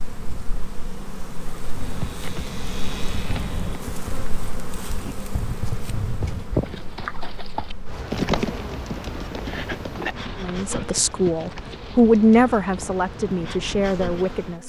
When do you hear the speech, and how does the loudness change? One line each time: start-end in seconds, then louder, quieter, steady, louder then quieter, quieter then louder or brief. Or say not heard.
10.4-14.6 louder then quieter.